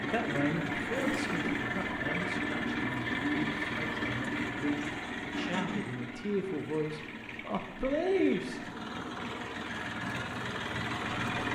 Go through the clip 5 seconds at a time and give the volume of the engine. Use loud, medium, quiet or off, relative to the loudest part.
loud, medium, loud.